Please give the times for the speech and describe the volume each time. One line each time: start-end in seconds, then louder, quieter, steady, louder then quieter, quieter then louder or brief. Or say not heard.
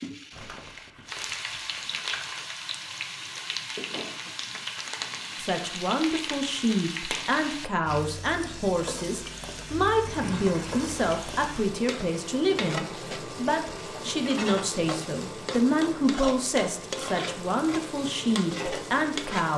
5.3-19.5 steady.